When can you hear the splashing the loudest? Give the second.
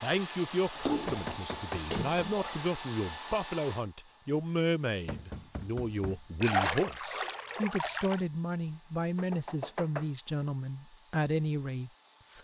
7 s.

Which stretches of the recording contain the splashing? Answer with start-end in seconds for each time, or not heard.
0.8-2.7, 6.4-8.2.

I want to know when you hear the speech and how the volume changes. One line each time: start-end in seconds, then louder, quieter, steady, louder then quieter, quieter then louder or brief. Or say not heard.
0.0-12.3 steady.